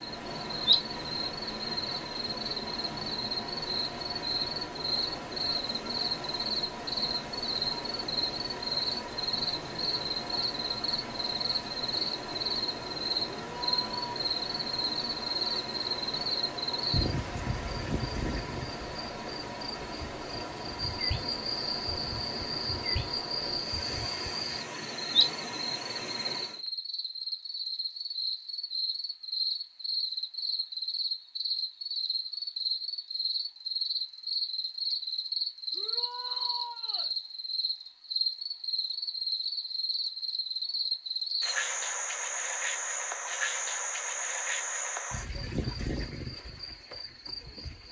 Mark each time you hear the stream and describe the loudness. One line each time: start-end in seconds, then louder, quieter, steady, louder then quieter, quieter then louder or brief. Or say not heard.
0.0-26.6 steady.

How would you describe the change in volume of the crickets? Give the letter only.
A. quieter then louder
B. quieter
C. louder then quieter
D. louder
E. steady
E.